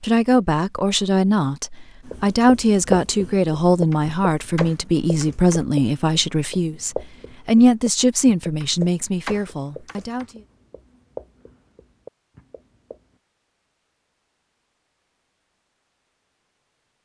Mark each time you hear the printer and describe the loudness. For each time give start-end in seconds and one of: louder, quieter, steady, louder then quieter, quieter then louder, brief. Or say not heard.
not heard.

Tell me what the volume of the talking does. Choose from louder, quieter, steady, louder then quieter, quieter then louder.
steady.